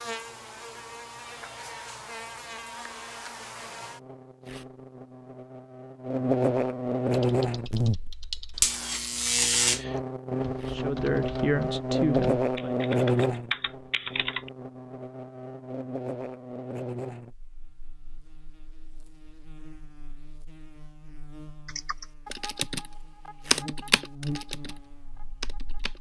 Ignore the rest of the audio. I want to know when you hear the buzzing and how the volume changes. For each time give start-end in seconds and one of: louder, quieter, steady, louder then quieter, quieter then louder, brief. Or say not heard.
0.0-25.9 louder then quieter.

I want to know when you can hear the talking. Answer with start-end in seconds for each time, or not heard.
10.7-12.8.